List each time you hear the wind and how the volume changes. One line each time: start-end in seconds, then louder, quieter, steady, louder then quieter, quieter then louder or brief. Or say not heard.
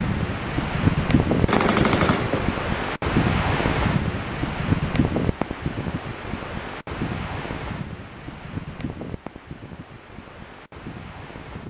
0.0-11.6 quieter.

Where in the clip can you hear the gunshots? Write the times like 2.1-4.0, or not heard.
1.4-2.5.